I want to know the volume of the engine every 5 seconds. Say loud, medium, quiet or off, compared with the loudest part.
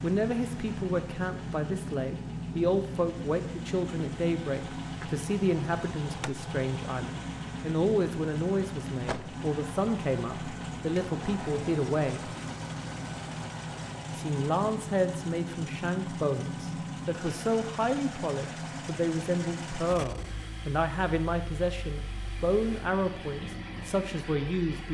loud, loud, loud, loud, medium.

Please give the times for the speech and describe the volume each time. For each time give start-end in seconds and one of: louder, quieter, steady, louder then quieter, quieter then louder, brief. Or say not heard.
0.0-12.3 steady
14.2-24.8 steady.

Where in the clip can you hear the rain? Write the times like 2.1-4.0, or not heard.
not heard.